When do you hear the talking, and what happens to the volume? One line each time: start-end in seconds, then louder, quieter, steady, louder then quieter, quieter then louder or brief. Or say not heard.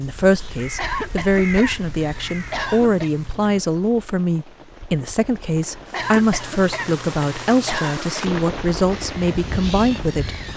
0.0-10.3 steady.